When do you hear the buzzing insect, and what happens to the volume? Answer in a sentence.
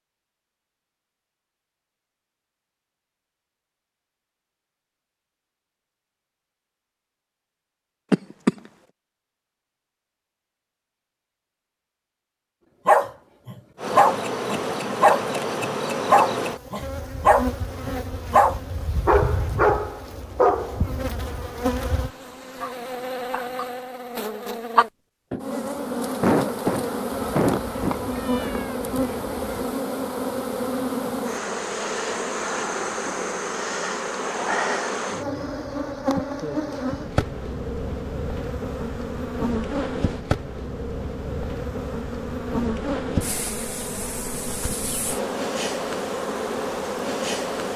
You can hear the buzzing insect from 13.8 to 47.7 s, at a steady volume.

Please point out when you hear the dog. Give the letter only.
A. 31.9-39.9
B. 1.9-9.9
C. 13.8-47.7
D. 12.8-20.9
D.